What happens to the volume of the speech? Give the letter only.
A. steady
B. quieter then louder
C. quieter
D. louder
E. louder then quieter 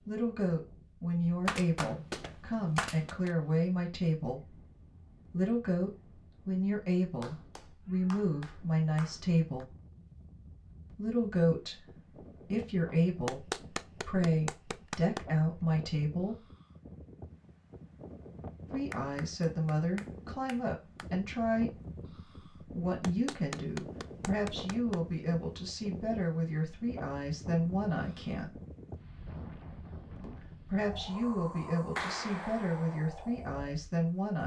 A.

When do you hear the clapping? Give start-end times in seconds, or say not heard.
1.4-3.4, 7.2-9.7, 13.2-15.2, 18.9-21.1, 23.0-25.0, 31.9-33.0.